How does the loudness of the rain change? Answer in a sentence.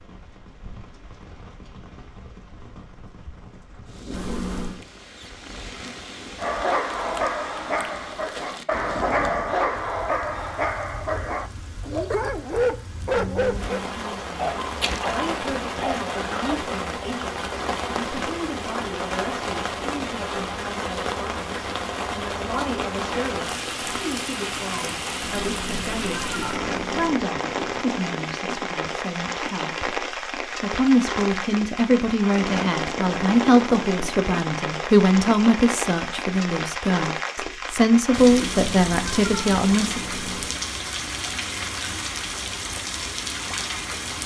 The loudness of the rain goes up.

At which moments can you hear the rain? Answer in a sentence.
The rain can be heard from 0.0 to 44.2 s.